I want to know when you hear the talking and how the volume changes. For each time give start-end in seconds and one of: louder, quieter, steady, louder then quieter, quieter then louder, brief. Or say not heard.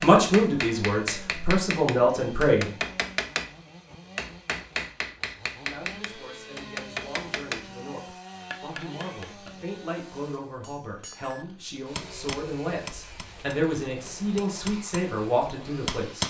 0.0-2.8 brief
5.5-16.2 louder.